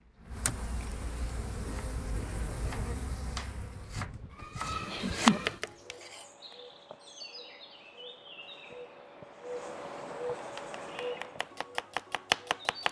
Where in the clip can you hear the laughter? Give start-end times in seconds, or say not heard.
4.3-5.6.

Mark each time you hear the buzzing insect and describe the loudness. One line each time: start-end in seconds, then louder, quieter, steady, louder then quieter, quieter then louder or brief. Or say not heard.
0.0-12.8 quieter then louder.